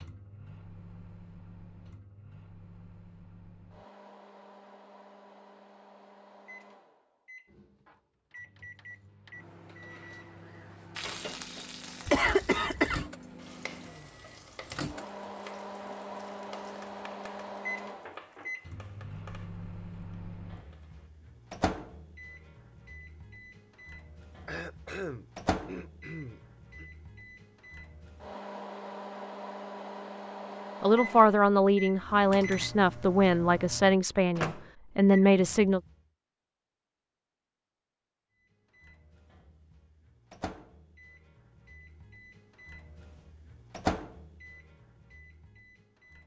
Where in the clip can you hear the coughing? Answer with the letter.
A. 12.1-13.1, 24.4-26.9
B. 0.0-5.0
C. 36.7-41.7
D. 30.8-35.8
A.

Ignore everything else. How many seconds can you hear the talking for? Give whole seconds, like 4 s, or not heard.
5 s.